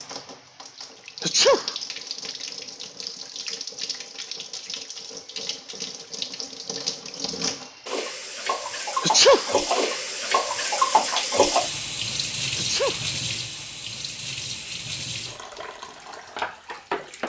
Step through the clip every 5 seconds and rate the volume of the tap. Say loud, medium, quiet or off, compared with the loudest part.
medium, loud, loud, medium.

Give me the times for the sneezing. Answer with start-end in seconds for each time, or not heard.
1.2-1.8, 9.0-9.6, 12.6-13.1.